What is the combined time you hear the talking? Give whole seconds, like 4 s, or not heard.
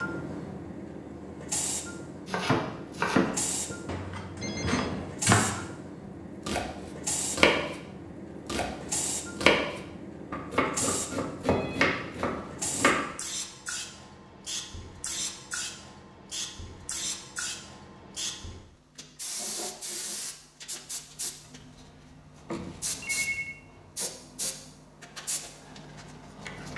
not heard.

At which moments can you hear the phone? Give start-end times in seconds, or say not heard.
4.4-5.2, 11.4-12.9, 22.4-23.6.